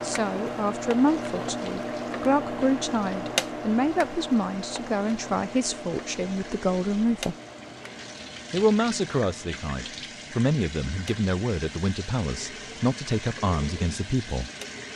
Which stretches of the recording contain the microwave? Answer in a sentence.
You can hear the microwave from 0.0 to 14.9 s.